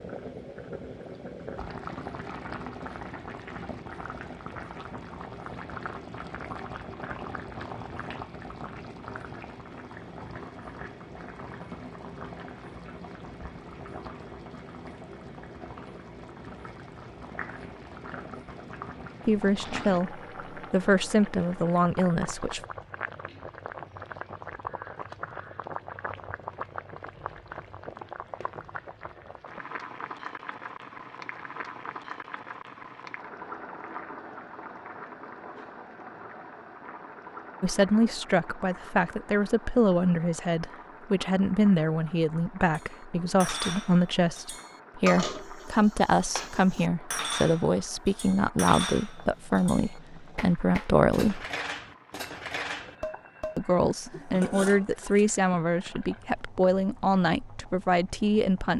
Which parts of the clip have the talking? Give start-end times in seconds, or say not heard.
19.2-22.6, 37.6-51.5, 53.5-58.7.